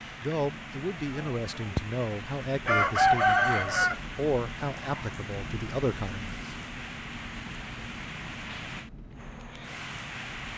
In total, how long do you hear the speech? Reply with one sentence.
You can hear the speech for 6 seconds altogether.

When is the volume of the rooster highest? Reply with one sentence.
The loudest moment of the rooster is at 3 seconds.